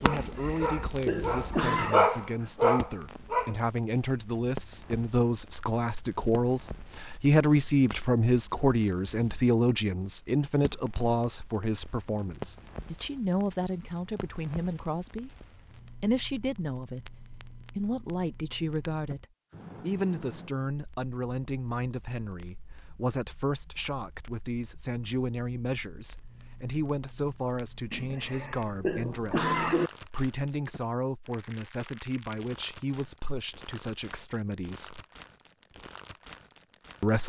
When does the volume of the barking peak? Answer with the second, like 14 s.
2 s.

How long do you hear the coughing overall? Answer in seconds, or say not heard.
4 s.